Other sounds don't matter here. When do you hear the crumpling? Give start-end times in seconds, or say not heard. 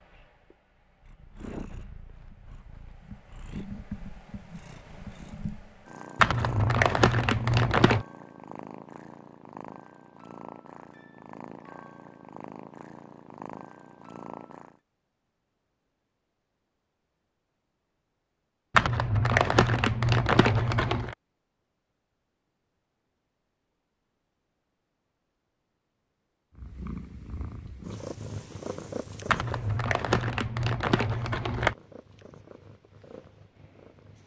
6.2-8.1, 18.8-21.1, 29.2-31.8.